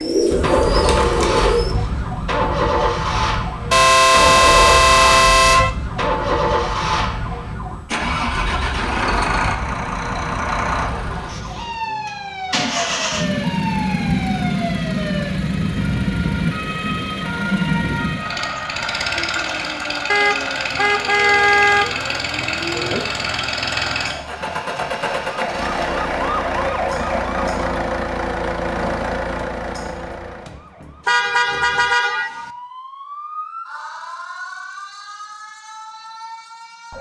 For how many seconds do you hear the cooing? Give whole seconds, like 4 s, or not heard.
2 s.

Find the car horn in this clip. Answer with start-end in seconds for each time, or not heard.
3.7-5.7, 20.1-21.9, 31.1-32.5.